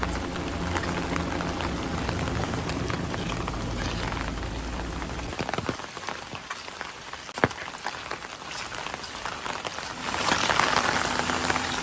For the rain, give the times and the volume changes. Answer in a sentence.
The rain can be heard from 0.0 to 11.7 s, getting louder.